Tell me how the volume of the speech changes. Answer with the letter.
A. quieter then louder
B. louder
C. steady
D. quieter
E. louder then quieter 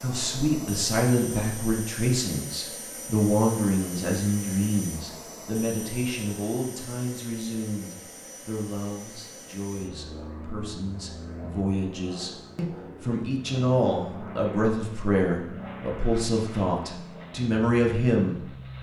A.